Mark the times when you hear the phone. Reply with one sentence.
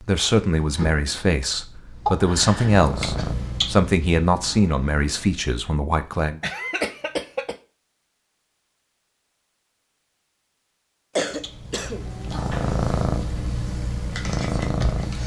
You can't hear the phone here.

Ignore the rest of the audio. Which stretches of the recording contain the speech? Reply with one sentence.
The speech can be heard from 0.0 to 6.4 s.